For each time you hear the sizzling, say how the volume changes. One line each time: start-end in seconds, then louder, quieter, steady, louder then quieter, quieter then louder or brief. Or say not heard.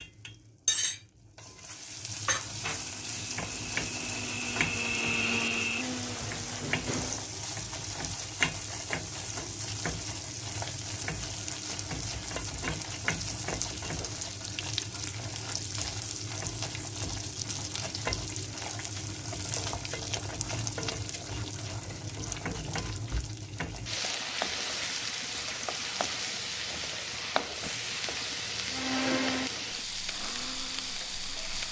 0.0-31.6 steady.